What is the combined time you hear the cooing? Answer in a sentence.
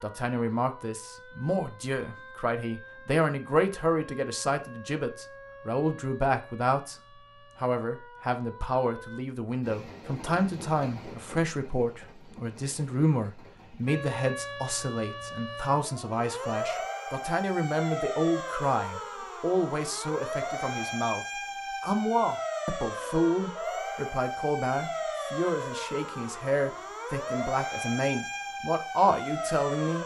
The cooing can't be heard in this clip.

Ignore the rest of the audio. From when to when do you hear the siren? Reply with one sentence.
The siren can be heard from 0.0 to 9.2 s and from 13.8 to 30.0 s.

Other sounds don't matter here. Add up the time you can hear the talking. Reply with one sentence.
The talking can be heard for 29 seconds in total.